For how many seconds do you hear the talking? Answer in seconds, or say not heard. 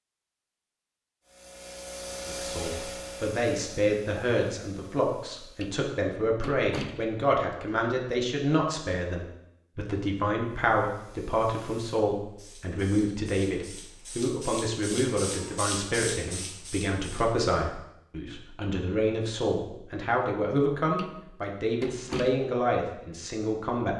22 s.